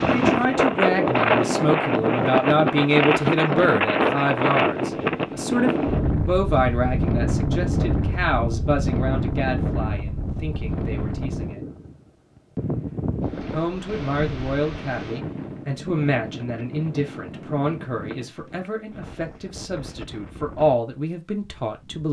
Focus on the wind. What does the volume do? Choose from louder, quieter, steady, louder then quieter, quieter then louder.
quieter.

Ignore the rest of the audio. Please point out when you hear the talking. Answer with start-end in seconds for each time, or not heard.
0.1-11.7, 13.5-22.0.